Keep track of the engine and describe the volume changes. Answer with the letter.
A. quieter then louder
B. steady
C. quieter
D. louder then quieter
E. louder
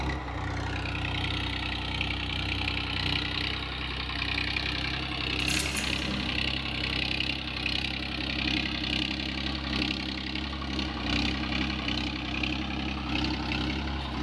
B.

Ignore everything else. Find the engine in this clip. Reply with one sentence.
The engine can be heard from 0.0 to 14.1 s.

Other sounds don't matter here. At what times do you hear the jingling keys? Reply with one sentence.
You can hear the jingling keys from 5.3 to 6.3 s.